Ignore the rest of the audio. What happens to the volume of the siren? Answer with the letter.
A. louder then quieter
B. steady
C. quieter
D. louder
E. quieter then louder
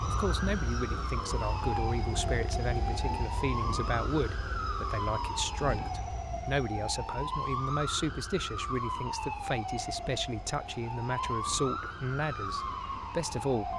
B.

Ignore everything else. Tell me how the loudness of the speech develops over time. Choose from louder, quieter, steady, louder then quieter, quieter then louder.
steady.